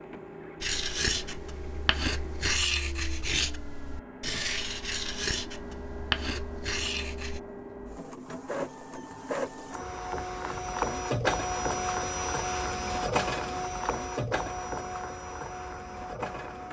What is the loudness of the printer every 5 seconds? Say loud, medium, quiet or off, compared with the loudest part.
quiet, medium, loud, medium.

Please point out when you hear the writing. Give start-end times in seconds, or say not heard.
0.6-7.4.